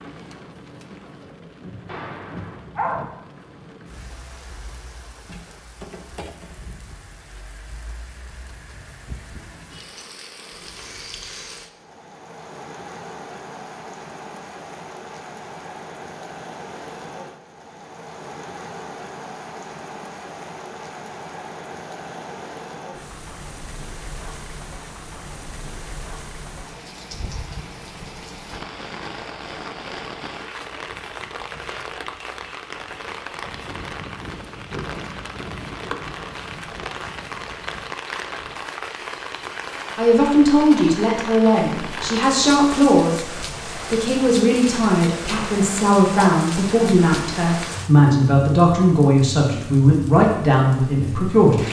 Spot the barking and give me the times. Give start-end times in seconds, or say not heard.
1.9-3.1, 45.2-46.5.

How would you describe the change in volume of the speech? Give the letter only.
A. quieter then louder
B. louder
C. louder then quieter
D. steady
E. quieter
D.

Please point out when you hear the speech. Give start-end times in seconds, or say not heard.
40.0-51.6.